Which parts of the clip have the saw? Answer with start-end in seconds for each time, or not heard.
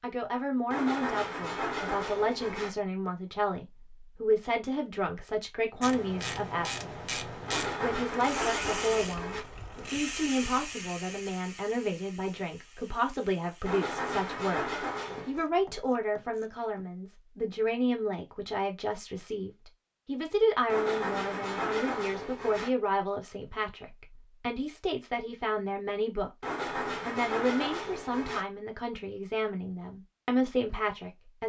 0.7-2.7, 7.5-9.4, 13.7-15.4, 20.6-22.7, 26.4-28.4.